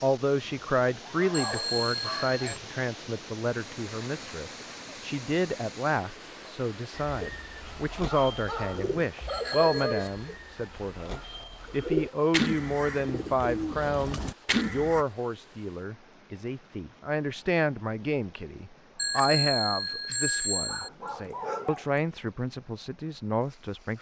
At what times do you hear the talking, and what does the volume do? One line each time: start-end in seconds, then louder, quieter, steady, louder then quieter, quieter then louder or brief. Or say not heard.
0.0-23.9 steady.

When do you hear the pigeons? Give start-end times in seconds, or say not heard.
7.0-15.1.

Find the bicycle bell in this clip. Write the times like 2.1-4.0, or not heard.
1.3-2.6, 8.7-10.3, 18.9-20.9.